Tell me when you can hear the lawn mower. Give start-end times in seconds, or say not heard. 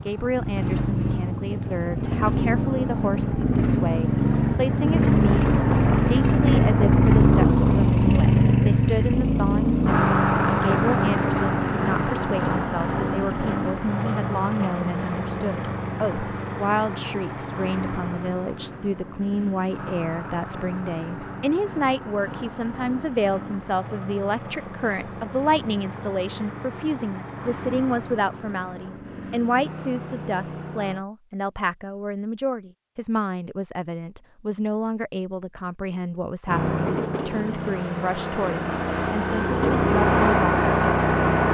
0.0-31.1, 36.5-41.4.